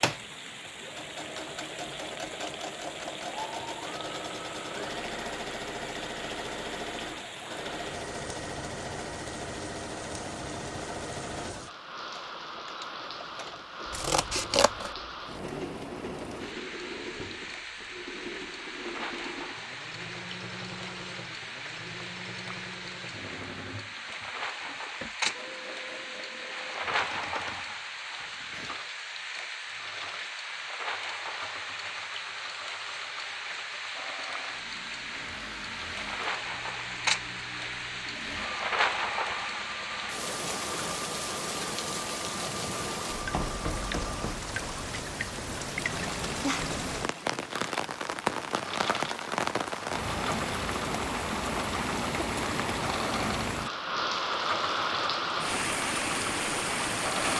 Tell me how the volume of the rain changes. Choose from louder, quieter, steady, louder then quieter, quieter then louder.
louder.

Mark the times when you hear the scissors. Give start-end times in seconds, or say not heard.
13.9-14.9.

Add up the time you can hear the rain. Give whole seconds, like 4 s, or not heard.
57 s.